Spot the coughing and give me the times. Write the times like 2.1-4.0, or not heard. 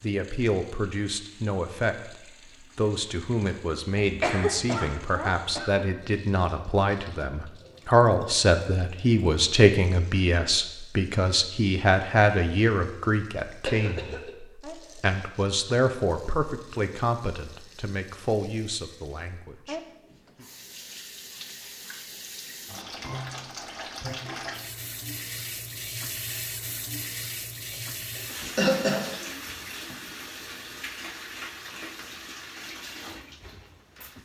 4.0-5.7, 13.7-14.3, 28.1-29.1.